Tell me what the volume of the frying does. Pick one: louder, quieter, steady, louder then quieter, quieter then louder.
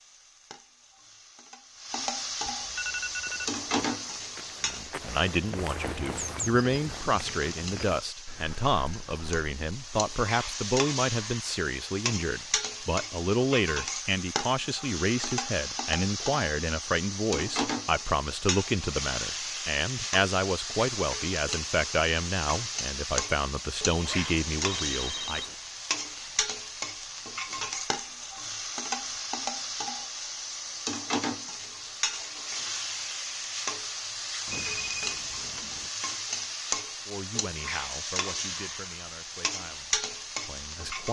steady.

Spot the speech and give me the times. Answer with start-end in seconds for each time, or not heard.
4.6-25.5, 37.0-41.0.